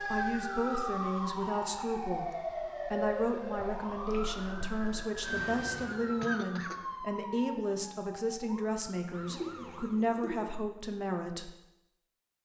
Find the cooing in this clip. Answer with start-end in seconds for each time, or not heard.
9.2-10.5.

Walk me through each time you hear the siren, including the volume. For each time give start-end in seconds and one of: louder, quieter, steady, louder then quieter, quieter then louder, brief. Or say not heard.
0.0-10.1 quieter.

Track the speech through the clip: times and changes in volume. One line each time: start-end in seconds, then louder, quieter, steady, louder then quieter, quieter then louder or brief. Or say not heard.
0.1-11.5 steady.